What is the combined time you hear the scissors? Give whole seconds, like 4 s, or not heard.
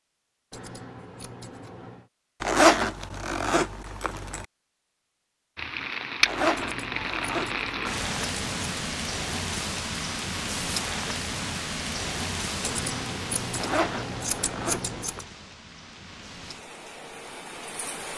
7 s.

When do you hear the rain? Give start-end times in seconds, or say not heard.
5.5-18.1.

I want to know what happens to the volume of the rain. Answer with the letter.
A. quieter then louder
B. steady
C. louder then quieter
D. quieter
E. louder
D.